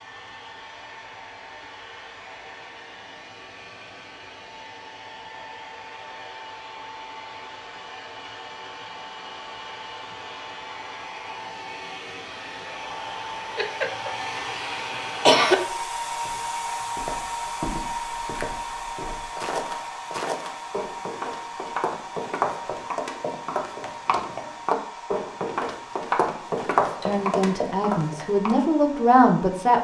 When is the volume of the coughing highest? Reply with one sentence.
The loudest moment of the coughing is at 15 seconds.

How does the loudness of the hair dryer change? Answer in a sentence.
The volume of the hair dryer goes up, then down.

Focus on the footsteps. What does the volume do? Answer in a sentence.
The loudness of the footsteps goes up.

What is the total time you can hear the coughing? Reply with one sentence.
You can hear the coughing for 2 seconds altogether.